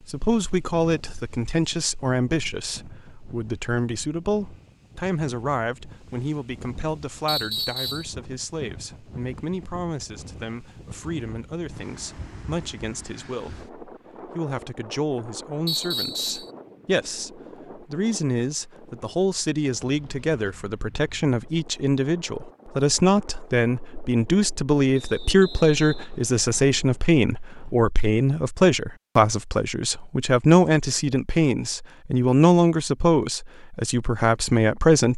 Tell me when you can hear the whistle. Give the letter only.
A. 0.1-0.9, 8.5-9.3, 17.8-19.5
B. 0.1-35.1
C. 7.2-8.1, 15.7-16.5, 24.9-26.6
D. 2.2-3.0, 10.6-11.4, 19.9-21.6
C.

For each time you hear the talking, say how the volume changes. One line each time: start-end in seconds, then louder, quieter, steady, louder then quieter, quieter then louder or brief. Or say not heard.
0.1-35.1 quieter then louder.